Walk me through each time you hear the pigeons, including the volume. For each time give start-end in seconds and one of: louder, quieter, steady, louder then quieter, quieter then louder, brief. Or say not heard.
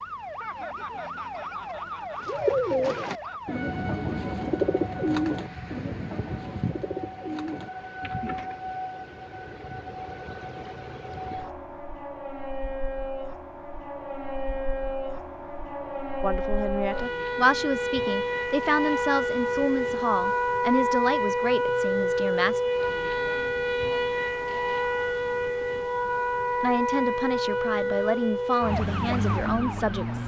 2.1-8.6 quieter.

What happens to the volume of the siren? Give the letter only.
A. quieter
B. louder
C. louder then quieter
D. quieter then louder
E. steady
B.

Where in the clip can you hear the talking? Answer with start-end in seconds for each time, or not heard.
16.2-22.6, 26.6-30.2.